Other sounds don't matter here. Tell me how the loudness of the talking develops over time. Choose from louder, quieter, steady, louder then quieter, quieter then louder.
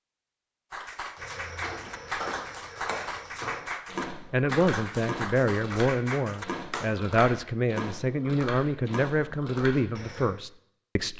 steady.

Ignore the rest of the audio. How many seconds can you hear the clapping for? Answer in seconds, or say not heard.
7 s.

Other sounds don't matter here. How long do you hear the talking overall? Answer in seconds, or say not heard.
7 s.